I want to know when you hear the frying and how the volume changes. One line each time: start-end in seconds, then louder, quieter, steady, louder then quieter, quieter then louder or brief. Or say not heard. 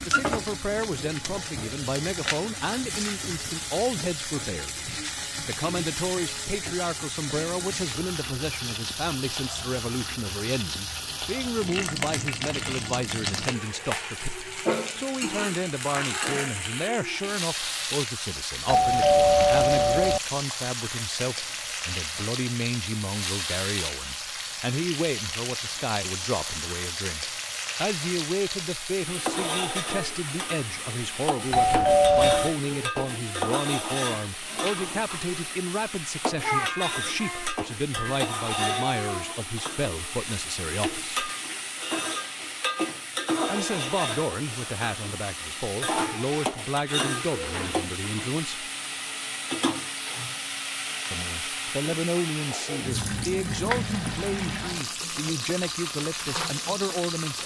0.0-57.4 steady.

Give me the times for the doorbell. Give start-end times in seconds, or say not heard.
18.6-20.2, 31.5-32.5.